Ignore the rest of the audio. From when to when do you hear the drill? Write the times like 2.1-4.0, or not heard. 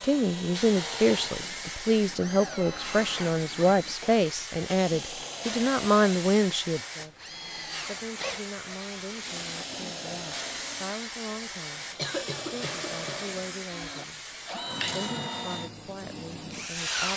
0.0-17.1.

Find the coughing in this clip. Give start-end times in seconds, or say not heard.
11.8-13.3.